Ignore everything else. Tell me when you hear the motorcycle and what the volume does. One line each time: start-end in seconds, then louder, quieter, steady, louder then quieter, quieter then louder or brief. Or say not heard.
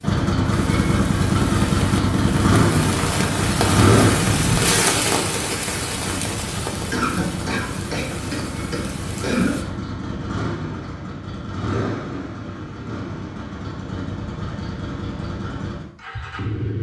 0.0-16.7 quieter.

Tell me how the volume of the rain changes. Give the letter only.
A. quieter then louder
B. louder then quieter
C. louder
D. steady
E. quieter
B.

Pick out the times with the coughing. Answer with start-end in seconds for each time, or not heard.
6.9-9.6.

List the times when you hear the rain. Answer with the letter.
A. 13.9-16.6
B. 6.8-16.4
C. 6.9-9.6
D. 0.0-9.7
D.